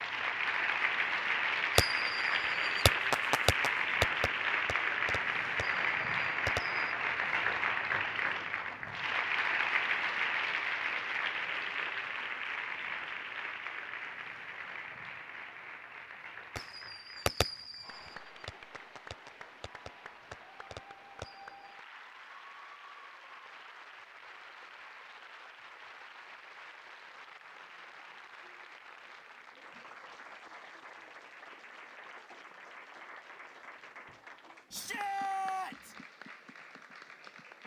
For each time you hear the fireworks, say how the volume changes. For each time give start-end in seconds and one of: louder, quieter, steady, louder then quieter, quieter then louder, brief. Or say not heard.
1.8-6.8 louder then quieter
16.6-21.5 quieter then louder.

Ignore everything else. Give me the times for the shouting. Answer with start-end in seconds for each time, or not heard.
34.7-36.0.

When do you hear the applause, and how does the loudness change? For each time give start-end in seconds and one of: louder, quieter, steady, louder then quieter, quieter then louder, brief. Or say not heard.
0.0-37.6 quieter.